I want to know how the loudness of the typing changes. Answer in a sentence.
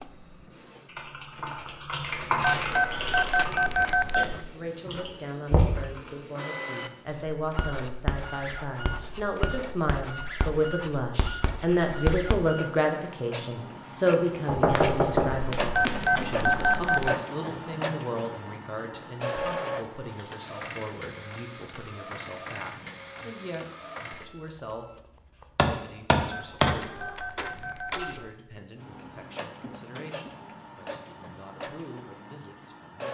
The loudness of the typing goes up, then down.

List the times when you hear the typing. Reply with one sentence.
The typing can be heard from 0.0 to 6.3 s.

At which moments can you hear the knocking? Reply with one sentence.
You can hear the knocking from 5.5 to 6.0 s, from 14.4 to 16.2 s and from 25.6 to 26.8 s.